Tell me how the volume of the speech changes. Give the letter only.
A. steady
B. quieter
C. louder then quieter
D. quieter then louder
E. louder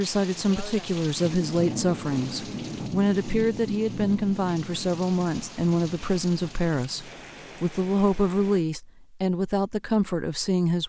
A.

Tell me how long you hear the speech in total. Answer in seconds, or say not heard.
11 s.